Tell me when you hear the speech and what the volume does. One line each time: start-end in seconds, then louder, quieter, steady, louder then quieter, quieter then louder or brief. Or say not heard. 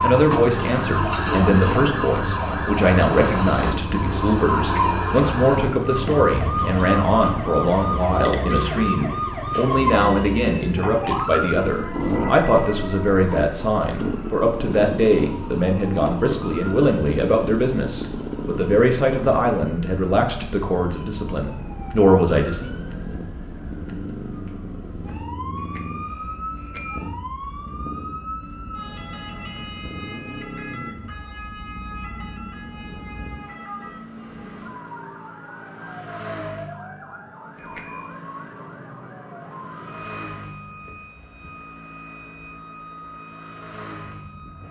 0.0-22.7 steady.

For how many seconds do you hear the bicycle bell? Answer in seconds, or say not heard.
3 s.